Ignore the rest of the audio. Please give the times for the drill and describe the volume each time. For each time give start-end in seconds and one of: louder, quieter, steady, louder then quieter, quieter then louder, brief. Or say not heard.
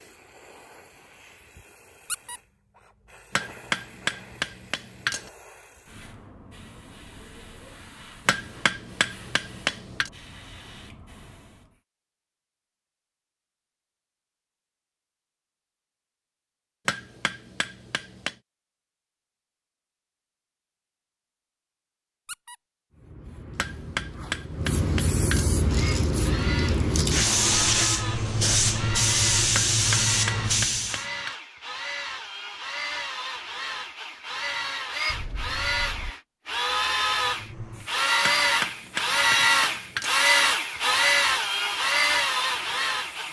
25.6-43.2 louder.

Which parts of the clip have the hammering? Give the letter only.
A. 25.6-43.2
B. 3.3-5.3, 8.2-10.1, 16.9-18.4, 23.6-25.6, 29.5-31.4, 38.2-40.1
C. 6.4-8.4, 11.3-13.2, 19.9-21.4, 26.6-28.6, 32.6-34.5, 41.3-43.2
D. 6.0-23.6
B.